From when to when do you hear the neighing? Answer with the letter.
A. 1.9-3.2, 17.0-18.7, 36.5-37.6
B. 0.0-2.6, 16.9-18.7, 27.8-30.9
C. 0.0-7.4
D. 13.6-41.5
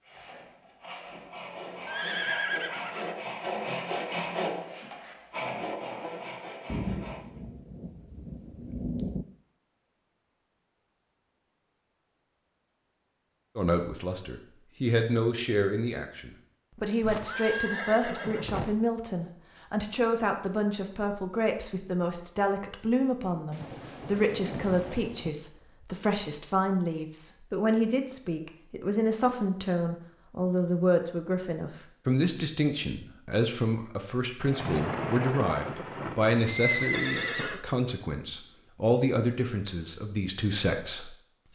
A.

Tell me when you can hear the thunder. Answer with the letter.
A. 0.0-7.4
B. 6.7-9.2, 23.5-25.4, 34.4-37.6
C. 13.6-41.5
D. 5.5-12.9
B.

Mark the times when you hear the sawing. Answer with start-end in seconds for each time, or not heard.
0.0-7.4.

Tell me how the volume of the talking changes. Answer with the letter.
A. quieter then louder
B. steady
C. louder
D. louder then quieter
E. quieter
B.